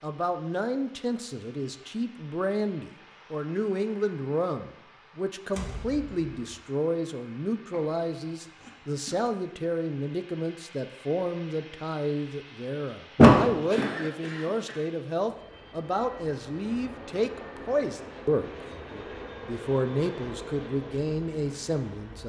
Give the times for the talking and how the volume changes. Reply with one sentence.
The talking can be heard from 0.0 to 22.2 s, at a steady volume.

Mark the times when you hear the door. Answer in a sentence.
You can hear the door from 5.5 to 6.6 s and from 13.2 to 13.9 s.